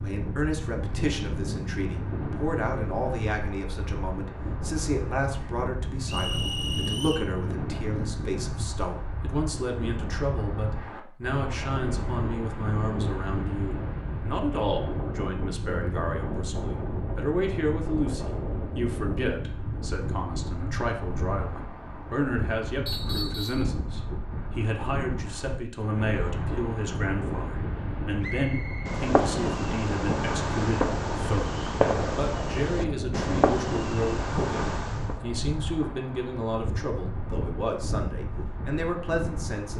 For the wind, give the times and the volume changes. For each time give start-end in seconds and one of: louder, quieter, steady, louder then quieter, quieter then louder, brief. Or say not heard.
0.0-39.7 steady.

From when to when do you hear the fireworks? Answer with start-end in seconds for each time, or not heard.
28.9-35.1.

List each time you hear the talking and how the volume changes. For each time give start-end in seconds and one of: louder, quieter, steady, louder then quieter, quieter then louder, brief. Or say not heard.
0.0-39.7 steady.